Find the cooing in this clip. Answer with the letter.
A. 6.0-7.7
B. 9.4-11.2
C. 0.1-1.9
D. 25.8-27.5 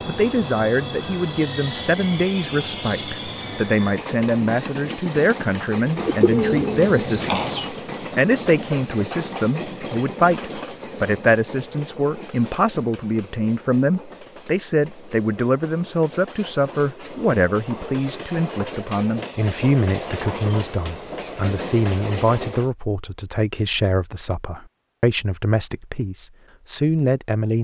A.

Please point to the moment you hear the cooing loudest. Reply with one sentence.
The loudest moment of the cooing is at 6 seconds.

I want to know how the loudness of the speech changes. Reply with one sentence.
The volume of the speech stays about the same.